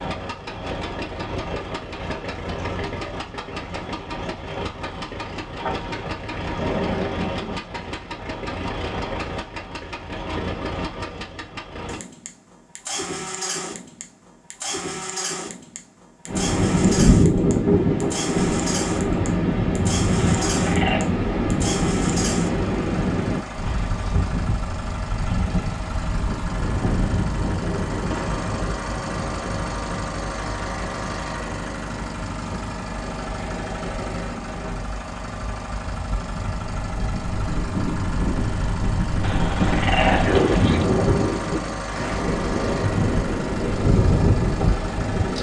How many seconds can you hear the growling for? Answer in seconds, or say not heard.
5 s.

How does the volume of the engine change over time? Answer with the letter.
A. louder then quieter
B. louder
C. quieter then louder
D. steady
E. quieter
D.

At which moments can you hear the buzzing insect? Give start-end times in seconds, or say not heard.
not heard.